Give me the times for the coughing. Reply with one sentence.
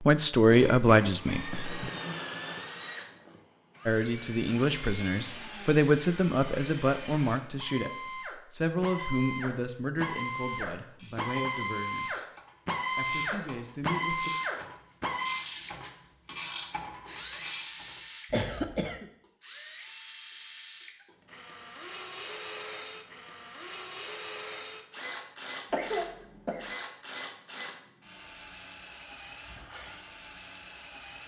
You can hear the coughing from 0.5 to 1.4 s, from 18.3 to 19.1 s and from 25.7 to 26.8 s.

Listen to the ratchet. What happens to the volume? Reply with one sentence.
The volume of the ratchet goes up.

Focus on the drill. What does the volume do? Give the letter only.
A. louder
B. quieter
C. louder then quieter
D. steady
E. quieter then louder
C.